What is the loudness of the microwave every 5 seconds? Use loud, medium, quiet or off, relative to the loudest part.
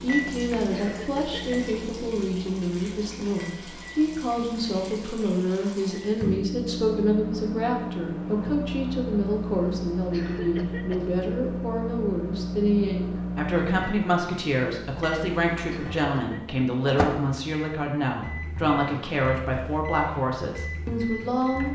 medium, loud, loud, loud, medium.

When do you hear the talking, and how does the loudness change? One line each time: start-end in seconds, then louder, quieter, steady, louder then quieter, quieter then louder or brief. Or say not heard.
0.0-21.7 steady.